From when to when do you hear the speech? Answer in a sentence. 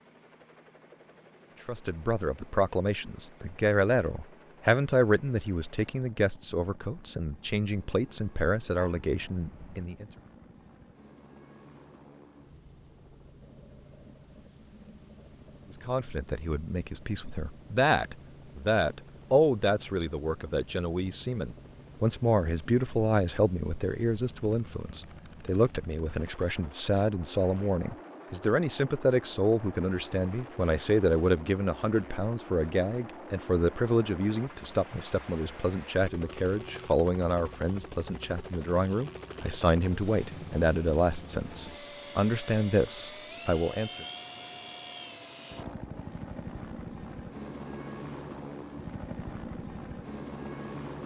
The speech can be heard from 1.6 to 10.1 s and from 15.8 to 44.0 s.